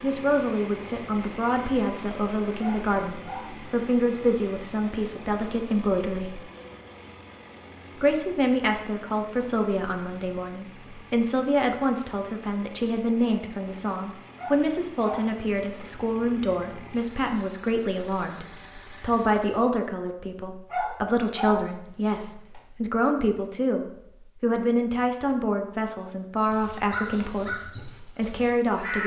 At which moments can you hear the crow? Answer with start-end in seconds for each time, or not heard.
26.5-29.0.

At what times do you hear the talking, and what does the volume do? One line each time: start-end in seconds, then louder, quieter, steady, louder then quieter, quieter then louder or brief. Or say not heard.
0.0-6.4 steady
8.0-29.0 steady.